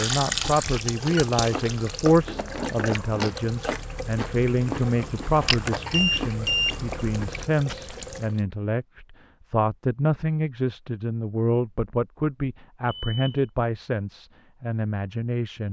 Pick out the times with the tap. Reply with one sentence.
You can hear the tap from 0.0 to 8.4 s.